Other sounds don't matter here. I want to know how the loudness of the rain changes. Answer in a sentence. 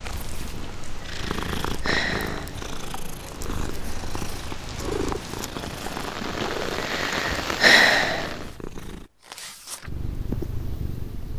The volume of the rain goes up.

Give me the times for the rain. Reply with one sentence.
The rain can be heard from 0.0 to 8.6 s.